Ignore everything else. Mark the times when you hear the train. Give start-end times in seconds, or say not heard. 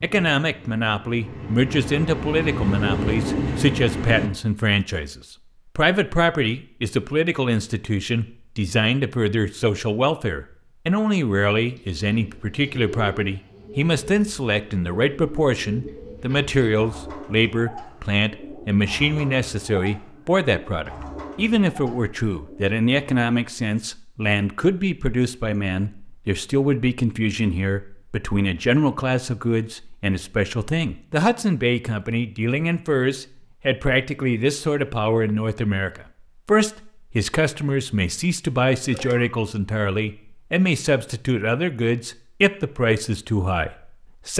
0.0-4.3.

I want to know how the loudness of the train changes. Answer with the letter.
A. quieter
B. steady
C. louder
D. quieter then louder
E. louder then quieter
C.